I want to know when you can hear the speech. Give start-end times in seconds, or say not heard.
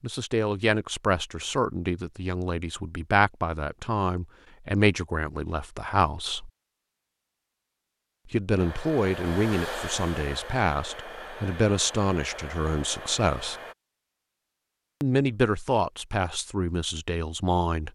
0.0-6.5, 8.3-13.6, 15.0-17.8.